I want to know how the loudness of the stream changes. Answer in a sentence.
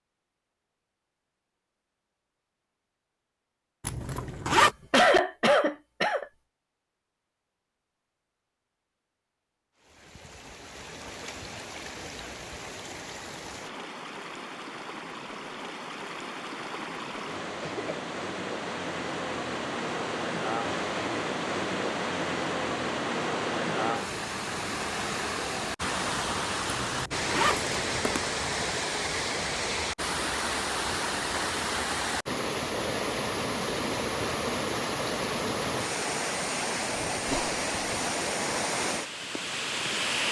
The loudness of the stream goes up.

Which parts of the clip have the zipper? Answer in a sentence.
The zipper can be heard from 3.8 to 4.8 s and from 26.6 to 28.2 s.